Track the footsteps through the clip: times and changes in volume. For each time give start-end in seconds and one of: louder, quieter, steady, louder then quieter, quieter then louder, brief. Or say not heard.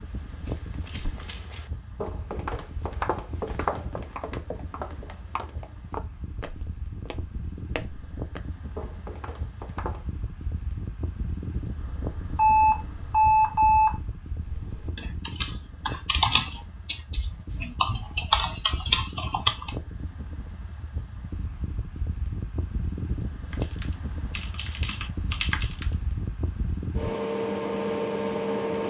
0.1-10.1 louder then quieter.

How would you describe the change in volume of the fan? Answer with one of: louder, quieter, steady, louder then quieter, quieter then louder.
louder.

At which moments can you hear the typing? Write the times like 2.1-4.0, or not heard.
14.3-19.8, 23.5-25.9.